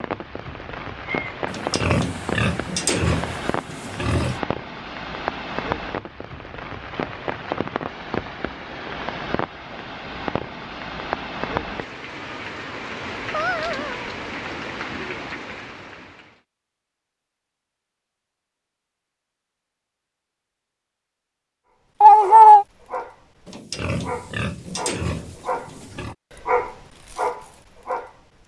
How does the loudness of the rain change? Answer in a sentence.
The volume of the rain stays about the same.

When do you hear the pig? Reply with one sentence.
You can hear the pig from 1.4 to 4.4 s and from 23.4 to 26.1 s.